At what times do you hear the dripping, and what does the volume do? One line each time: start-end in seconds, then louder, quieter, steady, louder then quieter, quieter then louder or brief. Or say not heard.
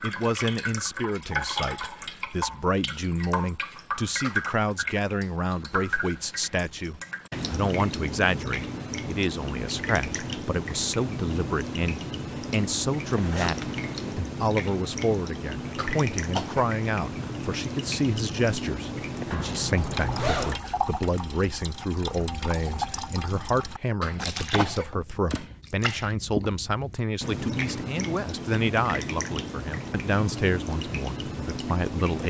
0.0-32.2 steady.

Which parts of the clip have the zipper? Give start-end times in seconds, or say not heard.
13.0-14.2, 19.3-20.6.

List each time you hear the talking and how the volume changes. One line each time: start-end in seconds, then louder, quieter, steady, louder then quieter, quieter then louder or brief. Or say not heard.
0.0-32.2 steady.